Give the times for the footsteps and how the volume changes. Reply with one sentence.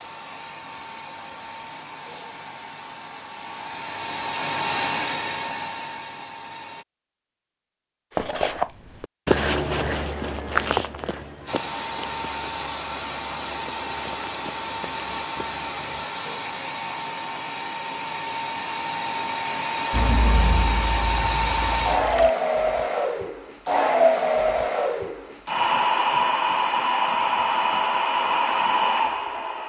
The footsteps can be heard from 8.1 to 16.1 s, getting quieter.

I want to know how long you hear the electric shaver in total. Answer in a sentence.
You can't hear the electric shaver here.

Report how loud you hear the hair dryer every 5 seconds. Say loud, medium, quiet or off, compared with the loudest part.
medium, medium, medium, medium, loud, loud.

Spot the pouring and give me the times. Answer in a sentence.
The pouring can be heard from 19.9 to 22.3 s.